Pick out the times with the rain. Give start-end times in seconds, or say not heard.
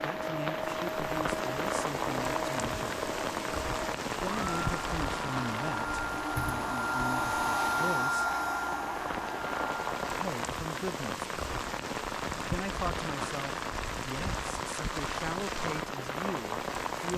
0.0-17.1.